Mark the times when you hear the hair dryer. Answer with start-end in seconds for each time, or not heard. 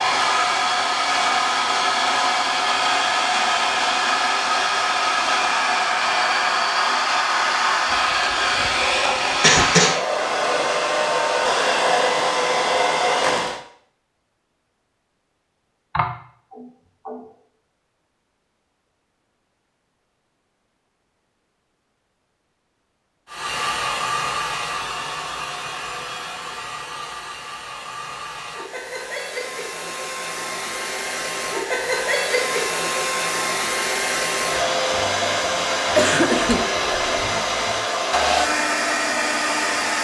0.0-13.6, 23.2-39.9.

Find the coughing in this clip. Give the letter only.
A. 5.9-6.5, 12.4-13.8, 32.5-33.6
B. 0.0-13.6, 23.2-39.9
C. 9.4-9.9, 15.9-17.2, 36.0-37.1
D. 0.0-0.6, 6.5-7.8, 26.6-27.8
C.